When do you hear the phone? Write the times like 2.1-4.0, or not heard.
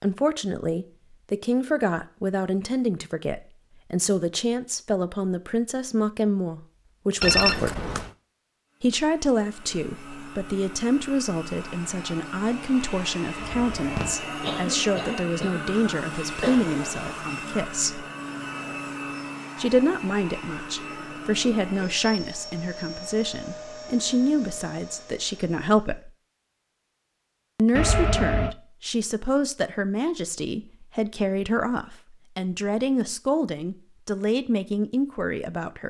7.2-8.1, 13.3-15.3, 27.8-28.6.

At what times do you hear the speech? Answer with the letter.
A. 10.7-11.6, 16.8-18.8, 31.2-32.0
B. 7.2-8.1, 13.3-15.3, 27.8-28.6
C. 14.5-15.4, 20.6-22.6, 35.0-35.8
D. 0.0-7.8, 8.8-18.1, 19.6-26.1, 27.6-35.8
D.